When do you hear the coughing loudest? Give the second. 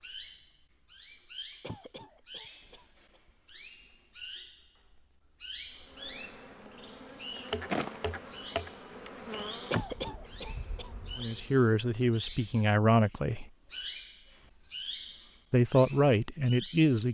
10 s.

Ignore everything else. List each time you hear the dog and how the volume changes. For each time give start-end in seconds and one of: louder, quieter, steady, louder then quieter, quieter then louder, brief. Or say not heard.
not heard.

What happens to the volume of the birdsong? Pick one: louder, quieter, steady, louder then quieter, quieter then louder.
louder.